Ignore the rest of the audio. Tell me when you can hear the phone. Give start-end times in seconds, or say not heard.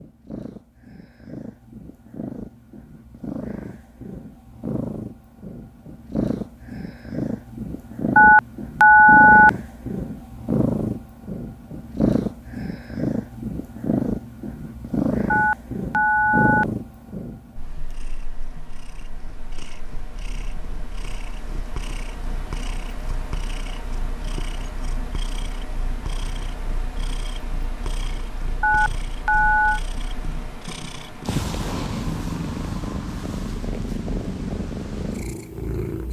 8.2-9.5, 15.3-16.6, 28.6-29.8.